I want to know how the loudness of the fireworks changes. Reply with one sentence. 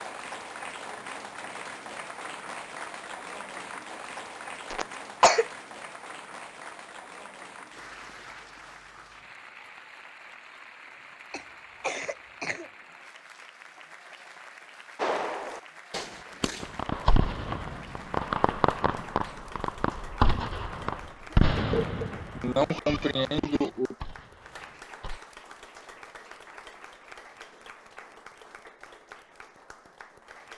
The volume of the fireworks goes down.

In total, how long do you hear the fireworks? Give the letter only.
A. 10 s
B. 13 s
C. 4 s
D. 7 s
A.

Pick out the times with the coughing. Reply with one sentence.
The coughing can be heard from 4.7 to 5.5 s, from 11.3 to 12.7 s and from 21.3 to 23.9 s.